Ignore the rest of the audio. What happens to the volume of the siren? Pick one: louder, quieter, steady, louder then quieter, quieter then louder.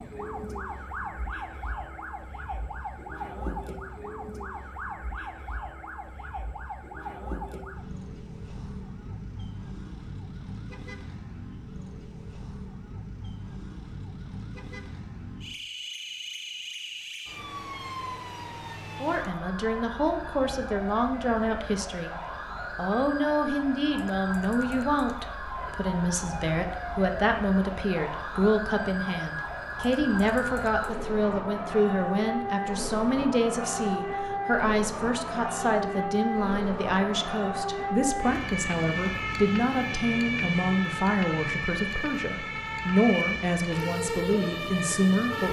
louder.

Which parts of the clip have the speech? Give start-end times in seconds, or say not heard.
19.0-22.1, 22.8-45.4.